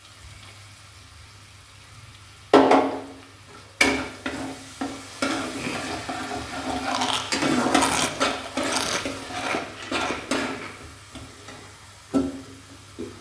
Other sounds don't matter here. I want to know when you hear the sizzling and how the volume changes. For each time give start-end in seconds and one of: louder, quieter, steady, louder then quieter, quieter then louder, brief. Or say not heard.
0.0-13.1 quieter.